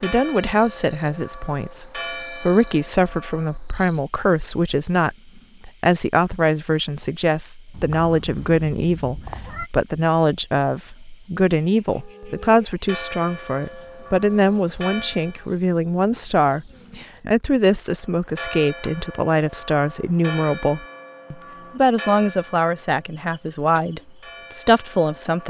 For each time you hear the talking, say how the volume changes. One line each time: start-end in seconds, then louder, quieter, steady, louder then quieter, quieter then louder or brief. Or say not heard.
0.0-25.4 steady.